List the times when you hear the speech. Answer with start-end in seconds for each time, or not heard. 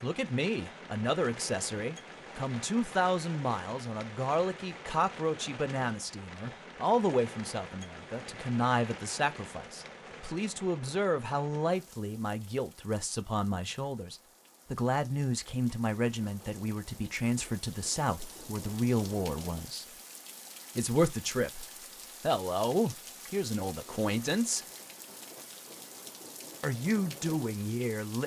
0.0-19.9, 20.8-24.6, 26.6-28.2.